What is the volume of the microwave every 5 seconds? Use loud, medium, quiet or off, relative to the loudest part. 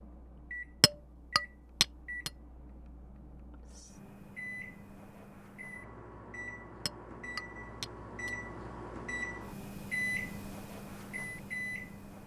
medium, loud, loud.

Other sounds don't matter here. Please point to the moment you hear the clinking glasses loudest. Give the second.
2 s.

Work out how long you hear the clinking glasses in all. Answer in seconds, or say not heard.
3 s.